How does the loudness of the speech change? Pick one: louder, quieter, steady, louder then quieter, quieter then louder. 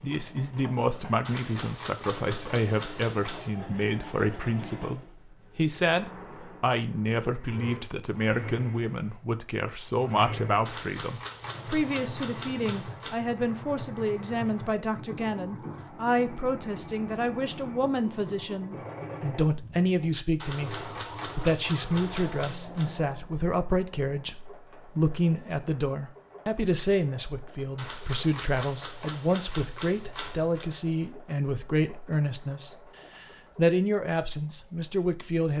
steady.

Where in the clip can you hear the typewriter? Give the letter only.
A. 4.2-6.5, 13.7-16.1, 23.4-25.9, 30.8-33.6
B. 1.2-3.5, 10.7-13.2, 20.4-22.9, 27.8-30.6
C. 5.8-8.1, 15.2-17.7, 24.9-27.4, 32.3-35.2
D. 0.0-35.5
B.